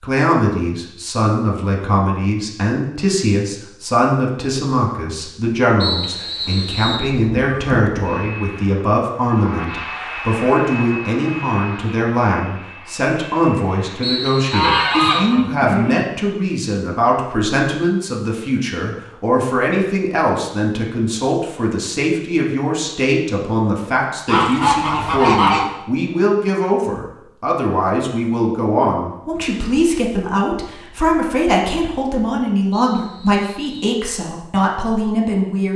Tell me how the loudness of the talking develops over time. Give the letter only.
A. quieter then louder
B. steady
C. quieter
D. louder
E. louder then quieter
B.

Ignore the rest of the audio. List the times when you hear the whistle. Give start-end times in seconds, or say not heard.
5.8-7.1, 14.0-15.3, 32.7-34.0.